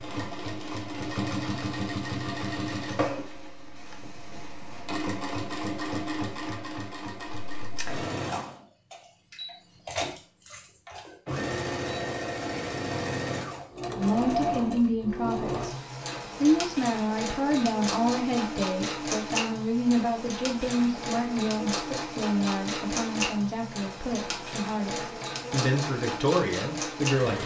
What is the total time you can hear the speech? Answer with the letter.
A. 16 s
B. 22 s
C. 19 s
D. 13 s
D.